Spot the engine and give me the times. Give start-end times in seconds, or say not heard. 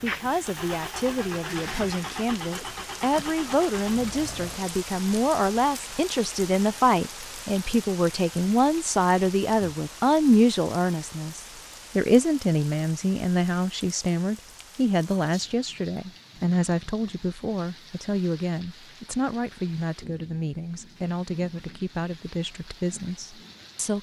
0.0-4.6.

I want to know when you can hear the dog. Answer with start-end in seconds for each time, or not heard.
not heard.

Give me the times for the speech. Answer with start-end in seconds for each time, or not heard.
0.0-23.9.